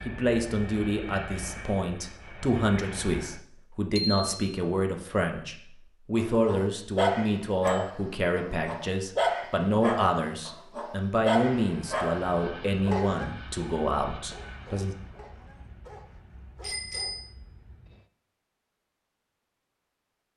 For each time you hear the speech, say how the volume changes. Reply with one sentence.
You can hear the speech from 0.1 to 14.9 s, at a steady volume.